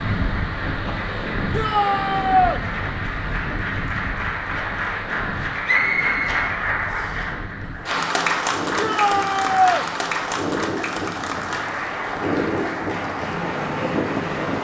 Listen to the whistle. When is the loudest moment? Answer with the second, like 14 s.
6 s.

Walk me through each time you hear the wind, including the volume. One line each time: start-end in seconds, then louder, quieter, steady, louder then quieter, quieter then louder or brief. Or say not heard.
0.0-14.5 quieter then louder.